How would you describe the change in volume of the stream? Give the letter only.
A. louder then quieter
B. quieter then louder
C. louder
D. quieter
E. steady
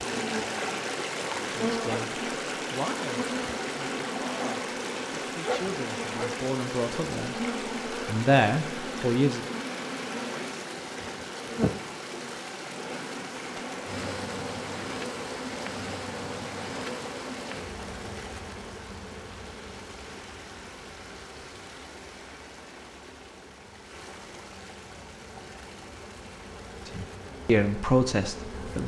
D.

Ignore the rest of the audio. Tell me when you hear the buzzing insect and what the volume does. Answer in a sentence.
The buzzing insect can be heard from 0.0 to 28.8 s, getting quieter.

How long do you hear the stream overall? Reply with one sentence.
You can hear the stream for 29 seconds altogether.